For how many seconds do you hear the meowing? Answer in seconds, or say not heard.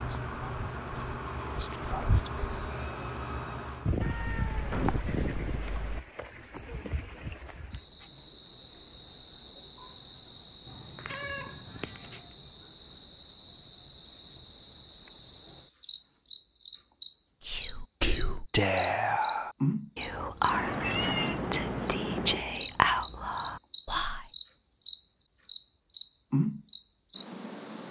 4 s.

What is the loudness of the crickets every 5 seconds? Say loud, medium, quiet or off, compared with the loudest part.
loud, medium, medium, loud, loud, loud.